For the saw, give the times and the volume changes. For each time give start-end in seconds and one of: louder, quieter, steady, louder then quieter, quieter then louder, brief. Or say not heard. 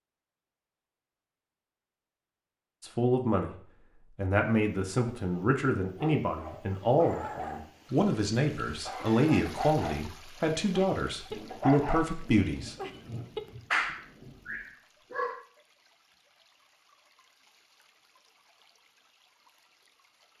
not heard.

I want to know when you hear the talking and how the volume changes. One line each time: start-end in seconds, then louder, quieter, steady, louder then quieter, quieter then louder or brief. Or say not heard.
2.8-12.8 steady.